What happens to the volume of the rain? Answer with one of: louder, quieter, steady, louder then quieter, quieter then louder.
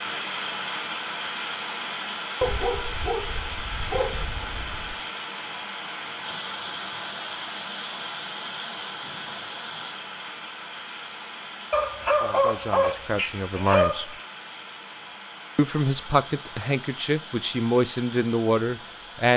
quieter.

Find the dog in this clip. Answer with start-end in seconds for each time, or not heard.
2.4-5.0, 11.7-14.2.